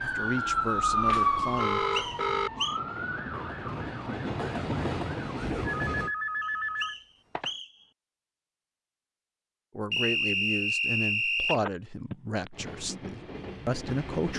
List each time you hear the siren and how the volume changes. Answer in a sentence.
You can hear the siren from 0.0 to 5.8 s, getting quieter.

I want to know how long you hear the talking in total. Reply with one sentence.
You can hear the talking for 6 seconds altogether.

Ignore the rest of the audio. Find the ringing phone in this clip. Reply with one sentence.
You can hear the ringing phone from 1.1 to 2.5 s, from 5.7 to 7.5 s and from 11.4 to 12.7 s.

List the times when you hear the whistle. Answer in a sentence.
The whistle can be heard from 1.6 to 2.8 s, from 6.4 to 7.7 s and from 9.9 to 11.6 s.